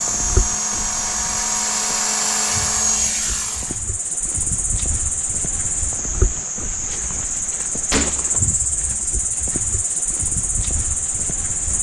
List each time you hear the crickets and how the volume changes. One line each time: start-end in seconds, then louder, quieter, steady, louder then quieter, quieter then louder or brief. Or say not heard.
0.0-11.7 louder.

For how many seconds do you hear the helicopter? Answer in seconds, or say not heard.
4 s.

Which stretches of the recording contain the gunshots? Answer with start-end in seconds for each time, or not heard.
7.9-8.4.